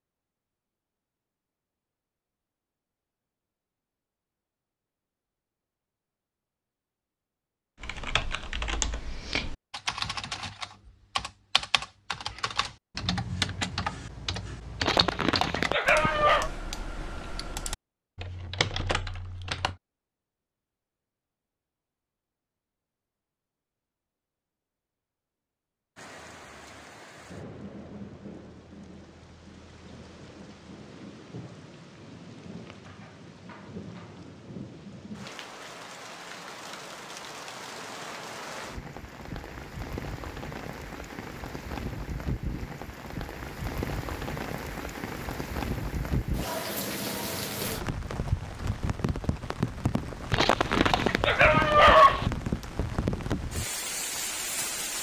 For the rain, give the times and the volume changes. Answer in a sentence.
You can hear the rain from 25.9 to 54.9 s, getting louder.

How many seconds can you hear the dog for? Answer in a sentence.
The dog can be heard for 4 seconds in total.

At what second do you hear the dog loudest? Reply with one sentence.
The loudest moment of the dog is at 52 seconds.